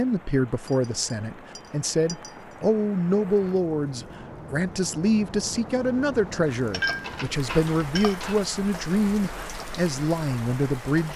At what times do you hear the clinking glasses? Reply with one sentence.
The clinking glasses can be heard from 0.7 to 2.5 s and from 6.5 to 8.4 s.